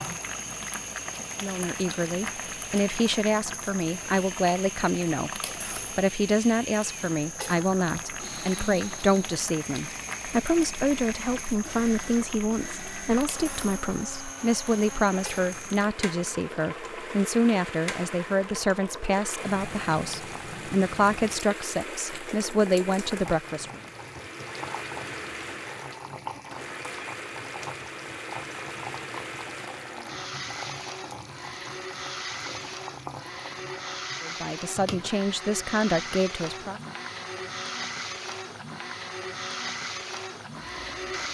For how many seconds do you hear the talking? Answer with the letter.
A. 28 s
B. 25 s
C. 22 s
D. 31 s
B.